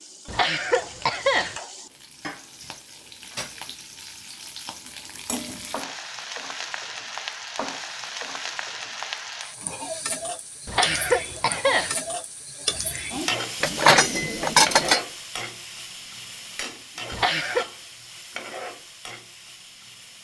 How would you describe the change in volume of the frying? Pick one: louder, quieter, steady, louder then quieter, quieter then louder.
louder then quieter.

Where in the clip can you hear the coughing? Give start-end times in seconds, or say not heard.
0.2-1.6, 10.7-11.9, 17.1-17.6.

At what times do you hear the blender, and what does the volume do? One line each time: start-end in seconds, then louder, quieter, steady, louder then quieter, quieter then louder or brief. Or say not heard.
not heard.